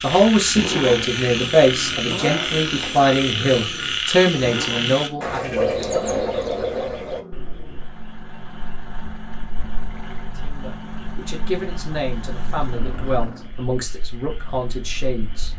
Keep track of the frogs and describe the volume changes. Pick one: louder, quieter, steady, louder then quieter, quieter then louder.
quieter.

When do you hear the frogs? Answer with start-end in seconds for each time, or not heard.
0.0-15.5.